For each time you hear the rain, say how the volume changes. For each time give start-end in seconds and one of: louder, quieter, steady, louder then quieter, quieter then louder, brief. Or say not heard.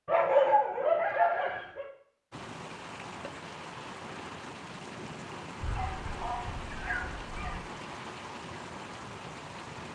2.3-9.9 steady.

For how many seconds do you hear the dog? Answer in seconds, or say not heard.
4 s.